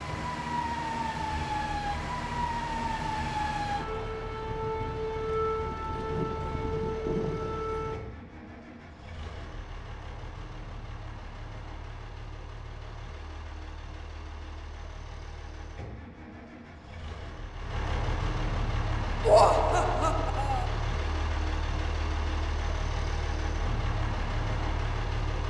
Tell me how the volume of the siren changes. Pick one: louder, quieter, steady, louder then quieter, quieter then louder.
steady.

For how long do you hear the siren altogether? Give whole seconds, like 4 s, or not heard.
8 s.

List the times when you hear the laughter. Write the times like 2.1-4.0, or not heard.
19.2-20.6.